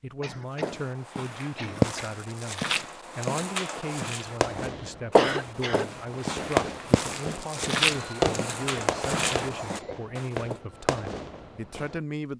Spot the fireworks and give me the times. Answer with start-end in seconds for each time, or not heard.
4.2-12.0.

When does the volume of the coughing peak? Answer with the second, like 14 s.
5 s.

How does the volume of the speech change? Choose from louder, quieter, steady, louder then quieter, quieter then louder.
steady.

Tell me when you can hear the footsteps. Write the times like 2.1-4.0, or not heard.
0.6-10.6.